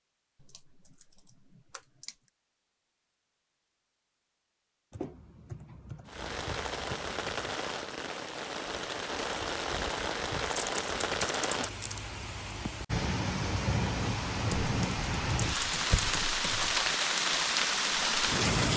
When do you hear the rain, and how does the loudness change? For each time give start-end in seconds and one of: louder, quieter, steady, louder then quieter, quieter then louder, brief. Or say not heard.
6.0-18.7 louder.